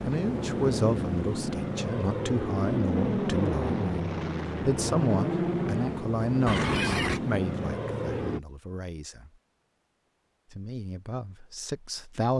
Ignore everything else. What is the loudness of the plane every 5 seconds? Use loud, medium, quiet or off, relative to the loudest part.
loud, loud, off.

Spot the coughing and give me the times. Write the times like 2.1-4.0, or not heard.
6.5-7.2.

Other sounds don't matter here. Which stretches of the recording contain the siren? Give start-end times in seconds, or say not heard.
not heard.